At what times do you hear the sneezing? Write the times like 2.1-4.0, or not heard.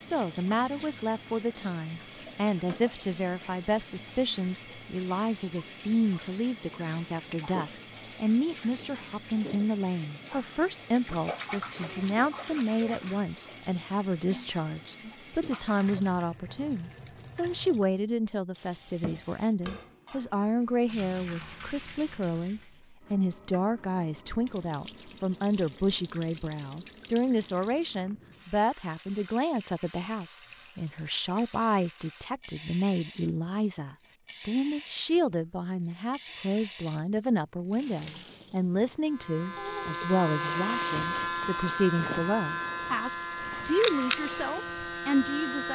not heard.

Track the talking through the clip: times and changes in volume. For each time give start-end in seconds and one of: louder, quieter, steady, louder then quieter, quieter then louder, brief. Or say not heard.
0.0-45.7 steady.